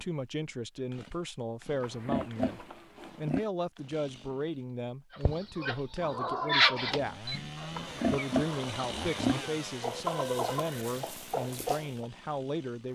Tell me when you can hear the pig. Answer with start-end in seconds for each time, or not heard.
1.8-3.5, 7.8-9.5.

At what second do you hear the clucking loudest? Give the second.
7 s.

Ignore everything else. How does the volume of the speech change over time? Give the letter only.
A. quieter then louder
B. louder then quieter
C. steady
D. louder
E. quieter
C.